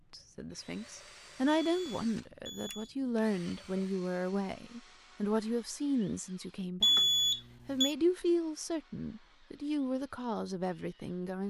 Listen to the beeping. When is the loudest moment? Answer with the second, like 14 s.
7 s.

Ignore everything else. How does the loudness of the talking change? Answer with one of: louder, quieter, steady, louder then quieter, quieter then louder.
steady.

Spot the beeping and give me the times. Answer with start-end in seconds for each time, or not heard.
1.4-2.9, 6.8-8.0.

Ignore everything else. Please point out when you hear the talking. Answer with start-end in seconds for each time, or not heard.
0.1-7.0, 7.7-11.4.